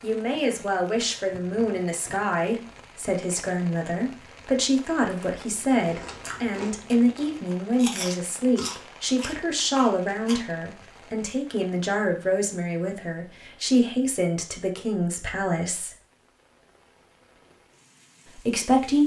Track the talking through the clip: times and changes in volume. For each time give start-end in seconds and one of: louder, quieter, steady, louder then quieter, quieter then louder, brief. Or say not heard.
0.0-15.9 steady
18.3-19.0 brief.